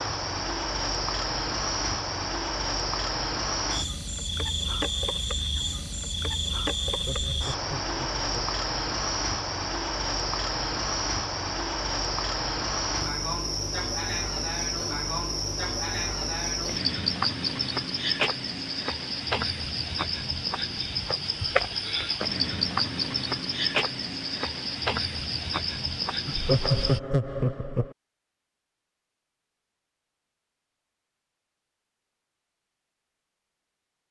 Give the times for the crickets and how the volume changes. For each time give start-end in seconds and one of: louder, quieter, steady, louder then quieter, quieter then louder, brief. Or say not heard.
0.0-27.0 steady.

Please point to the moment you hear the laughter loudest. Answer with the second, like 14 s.
27 s.